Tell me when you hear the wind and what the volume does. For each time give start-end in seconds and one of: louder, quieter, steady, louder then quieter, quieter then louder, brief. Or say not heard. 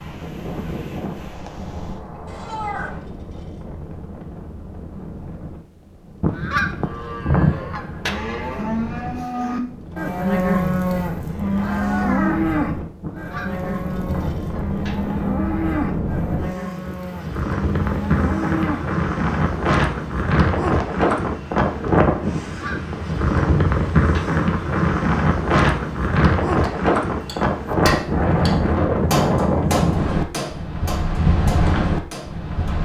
0.0-32.7 louder.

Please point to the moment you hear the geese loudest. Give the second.
7 s.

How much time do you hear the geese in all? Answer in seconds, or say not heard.
6 s.